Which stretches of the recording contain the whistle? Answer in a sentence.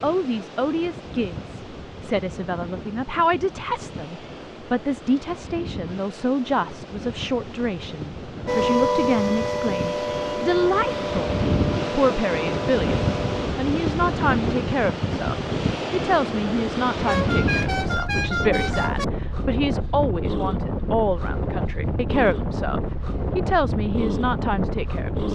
You can't hear the whistle here.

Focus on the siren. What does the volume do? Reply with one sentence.
The loudness of the siren goes down.